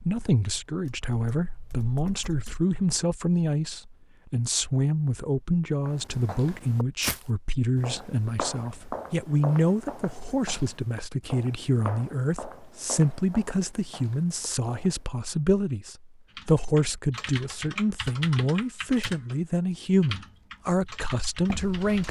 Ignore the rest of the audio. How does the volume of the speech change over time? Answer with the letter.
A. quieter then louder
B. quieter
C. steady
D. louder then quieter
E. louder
C.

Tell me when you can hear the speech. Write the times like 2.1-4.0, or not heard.
0.1-22.0.